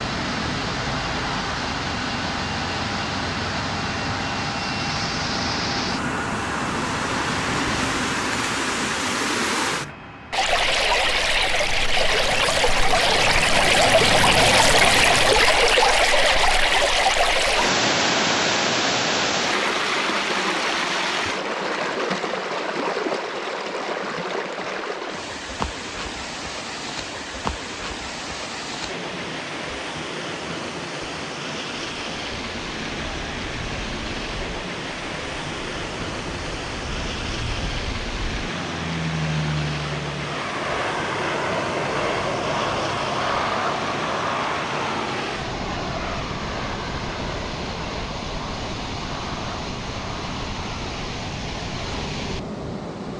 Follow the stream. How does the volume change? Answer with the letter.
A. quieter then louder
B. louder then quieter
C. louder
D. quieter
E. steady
B.